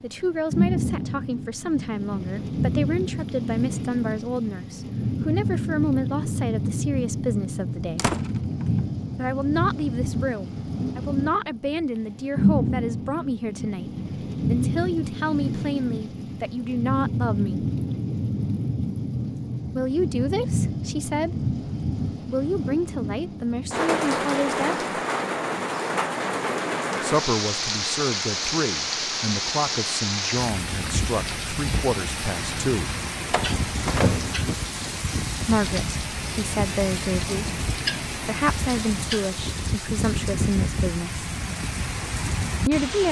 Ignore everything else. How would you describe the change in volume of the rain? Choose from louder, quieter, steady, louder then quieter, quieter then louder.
steady.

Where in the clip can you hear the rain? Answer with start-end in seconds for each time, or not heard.
0.0-43.0.